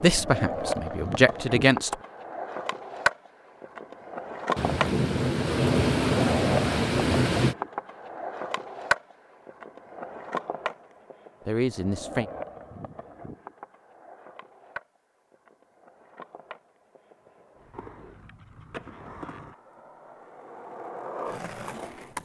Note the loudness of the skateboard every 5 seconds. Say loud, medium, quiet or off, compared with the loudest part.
loud, loud, medium, quiet, medium.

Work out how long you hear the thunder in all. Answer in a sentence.
The thunder can be heard for 3 seconds in total.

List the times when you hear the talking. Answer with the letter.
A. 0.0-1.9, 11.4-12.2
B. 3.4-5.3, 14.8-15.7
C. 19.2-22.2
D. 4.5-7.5
A.